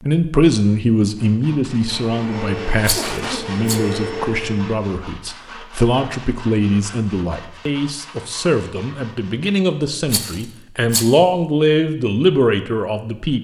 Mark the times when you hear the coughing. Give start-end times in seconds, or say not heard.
2.9-3.6.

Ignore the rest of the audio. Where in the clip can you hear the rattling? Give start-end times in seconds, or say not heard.
2.8-3.8, 10.1-11.2.